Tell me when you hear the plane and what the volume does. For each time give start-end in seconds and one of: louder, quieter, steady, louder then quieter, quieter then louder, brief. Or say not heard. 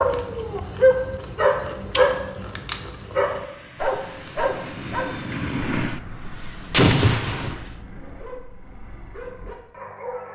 3.2-7.8 louder then quieter.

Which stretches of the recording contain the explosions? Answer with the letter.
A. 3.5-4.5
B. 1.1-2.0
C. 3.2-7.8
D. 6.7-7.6
D.